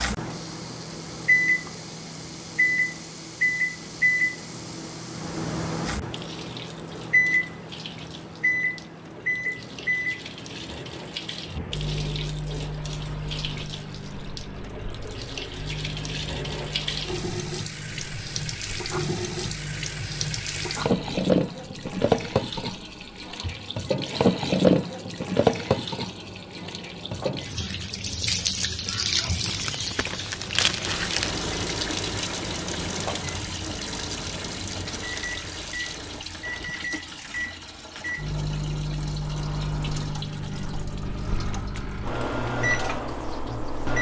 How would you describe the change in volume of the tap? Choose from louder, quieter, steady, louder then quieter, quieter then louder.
louder then quieter.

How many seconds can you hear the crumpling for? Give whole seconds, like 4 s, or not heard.
2 s.